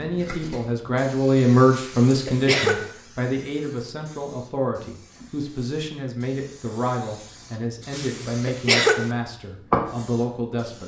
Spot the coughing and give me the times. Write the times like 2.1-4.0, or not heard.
1.7-2.9, 7.9-9.1.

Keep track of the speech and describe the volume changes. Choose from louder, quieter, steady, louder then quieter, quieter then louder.
quieter.